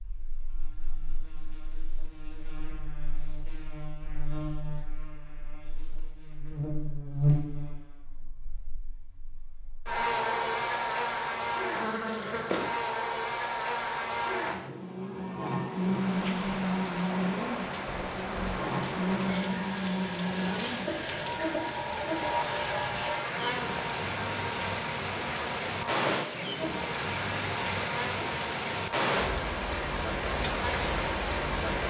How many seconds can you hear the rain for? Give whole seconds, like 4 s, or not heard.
16 s.